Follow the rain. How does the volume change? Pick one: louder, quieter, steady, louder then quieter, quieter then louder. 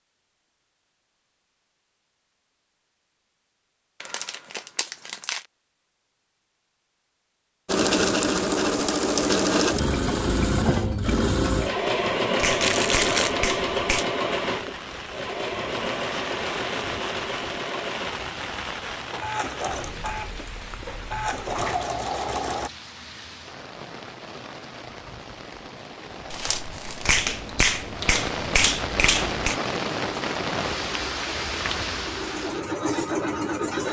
quieter then louder.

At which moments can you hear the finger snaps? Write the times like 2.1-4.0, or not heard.
12.3-14.1, 27.1-29.6.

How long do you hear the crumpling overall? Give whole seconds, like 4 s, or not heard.
3 s.